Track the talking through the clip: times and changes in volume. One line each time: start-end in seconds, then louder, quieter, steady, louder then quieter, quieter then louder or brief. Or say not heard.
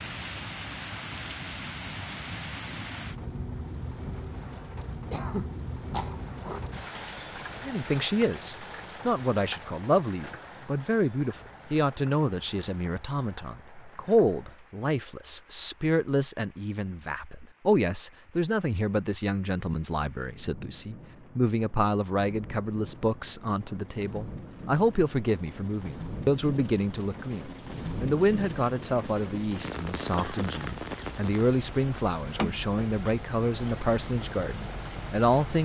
7.7-35.6 steady.